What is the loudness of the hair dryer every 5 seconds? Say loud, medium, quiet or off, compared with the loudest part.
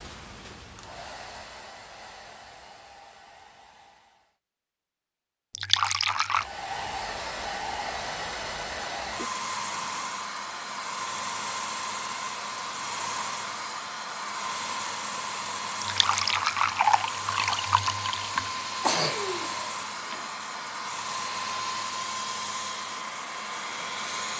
quiet, loud, loud, loud, loud.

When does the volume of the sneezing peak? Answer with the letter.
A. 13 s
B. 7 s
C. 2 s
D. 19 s
D.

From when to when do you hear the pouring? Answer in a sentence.
You can hear the pouring from 5.5 to 6.5 s and from 15.8 to 18.5 s.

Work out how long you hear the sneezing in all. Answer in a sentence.
The sneezing can be heard for 2 seconds in total.